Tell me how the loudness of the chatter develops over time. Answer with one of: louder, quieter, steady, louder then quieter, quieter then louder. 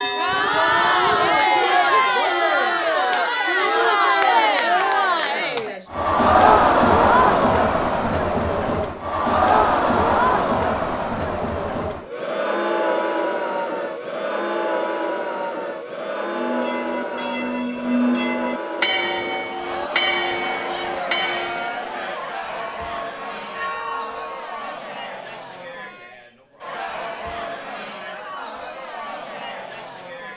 quieter.